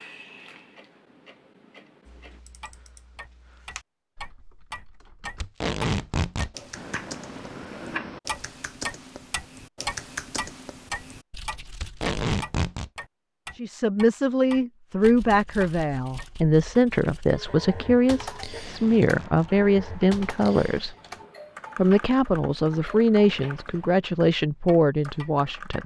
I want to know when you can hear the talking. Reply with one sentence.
You can hear the talking from 13.6 to 20.9 s and from 21.8 to 25.8 s.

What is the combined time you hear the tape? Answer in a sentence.
The tape can be heard for 3 seconds in total.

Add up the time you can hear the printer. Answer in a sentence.
You can't hear the printer here.